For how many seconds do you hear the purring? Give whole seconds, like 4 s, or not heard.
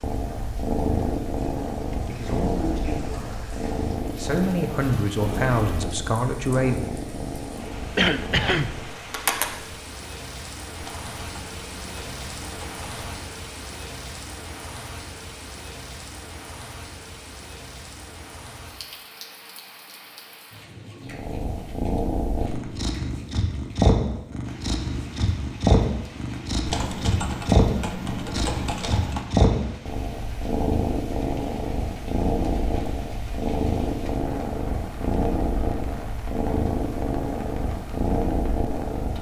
28 s.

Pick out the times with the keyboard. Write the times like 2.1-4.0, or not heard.
10.8-13.1, 26.6-29.3.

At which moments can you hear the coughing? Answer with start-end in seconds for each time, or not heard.
8.0-8.7.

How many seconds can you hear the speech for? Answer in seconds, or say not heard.
4 s.